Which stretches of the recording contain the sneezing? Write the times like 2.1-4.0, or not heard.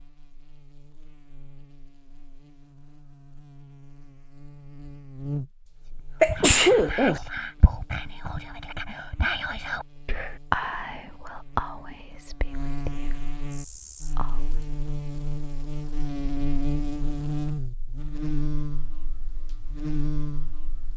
6.2-7.2.